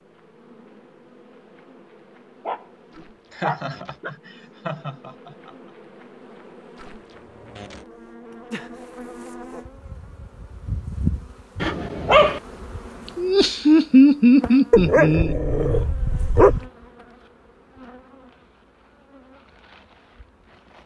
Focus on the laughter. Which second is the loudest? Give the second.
14 s.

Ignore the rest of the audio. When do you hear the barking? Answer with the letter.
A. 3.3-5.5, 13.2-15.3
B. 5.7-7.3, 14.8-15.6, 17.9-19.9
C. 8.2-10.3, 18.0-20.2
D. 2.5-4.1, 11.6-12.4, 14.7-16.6
D.